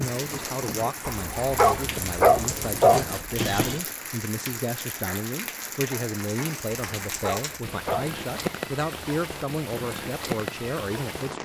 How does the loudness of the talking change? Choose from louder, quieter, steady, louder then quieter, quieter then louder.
steady.